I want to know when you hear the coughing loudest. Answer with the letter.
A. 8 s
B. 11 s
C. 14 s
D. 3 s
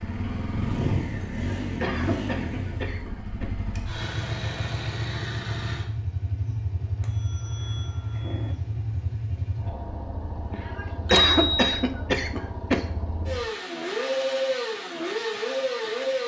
B.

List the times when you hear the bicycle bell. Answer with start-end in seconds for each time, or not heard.
0.5-1.1, 7.0-8.6, 11.1-11.7.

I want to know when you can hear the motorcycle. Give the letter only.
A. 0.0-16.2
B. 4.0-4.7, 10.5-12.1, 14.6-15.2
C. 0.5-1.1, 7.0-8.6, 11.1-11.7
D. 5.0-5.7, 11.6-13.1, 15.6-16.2
A.